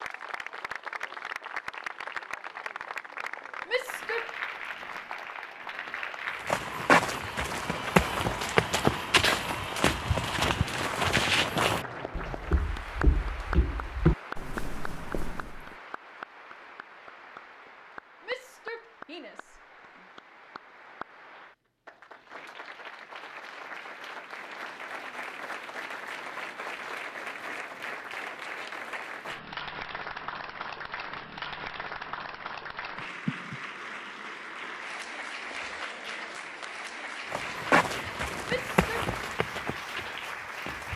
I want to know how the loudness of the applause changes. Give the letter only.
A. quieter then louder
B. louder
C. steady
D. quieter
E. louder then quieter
A.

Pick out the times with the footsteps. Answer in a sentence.
The footsteps can be heard from 6.5 to 15.7 s and from 37.3 to 40.9 s.